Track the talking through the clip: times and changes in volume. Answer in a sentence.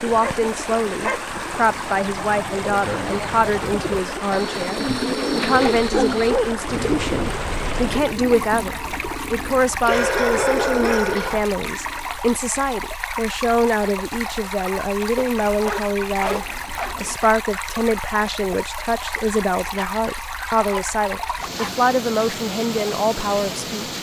You can hear the talking from 0.0 to 23.9 s, at a steady volume.